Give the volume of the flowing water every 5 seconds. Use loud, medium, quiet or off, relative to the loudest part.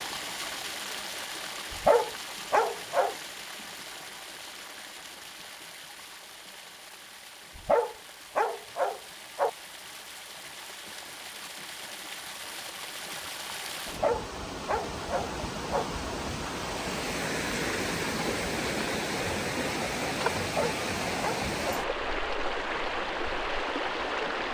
medium, quiet, medium, loud, loud.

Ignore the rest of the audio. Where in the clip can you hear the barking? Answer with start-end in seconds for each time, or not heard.
1.7-3.1, 7.5-9.5, 13.8-15.8, 20.4-21.9.